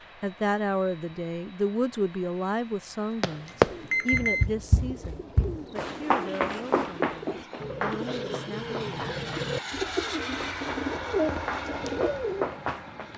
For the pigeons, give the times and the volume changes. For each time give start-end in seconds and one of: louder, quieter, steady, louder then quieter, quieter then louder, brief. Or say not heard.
3.6-12.5 louder.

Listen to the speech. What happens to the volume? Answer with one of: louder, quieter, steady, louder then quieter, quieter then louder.
quieter.